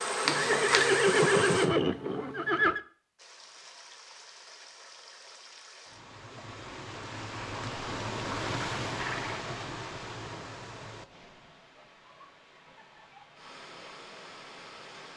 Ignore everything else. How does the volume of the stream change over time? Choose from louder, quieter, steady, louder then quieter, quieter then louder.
louder then quieter.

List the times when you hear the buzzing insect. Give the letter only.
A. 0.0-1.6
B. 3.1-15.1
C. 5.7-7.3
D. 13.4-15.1
A.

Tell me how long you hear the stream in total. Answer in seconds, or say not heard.
12 s.